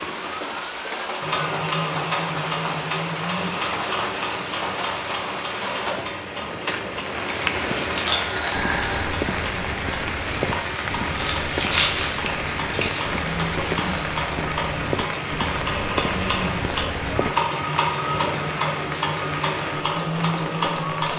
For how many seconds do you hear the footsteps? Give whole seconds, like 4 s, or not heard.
11 s.